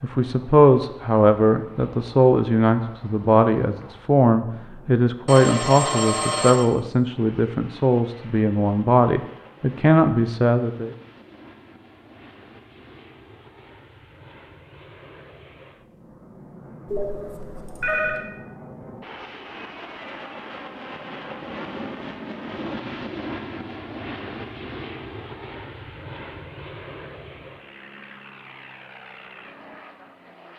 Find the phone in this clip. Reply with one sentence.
The phone can be heard from 5.2 to 6.7 s and from 16.9 to 18.2 s.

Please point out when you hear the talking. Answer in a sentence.
The talking can be heard from 0.0 to 10.9 s.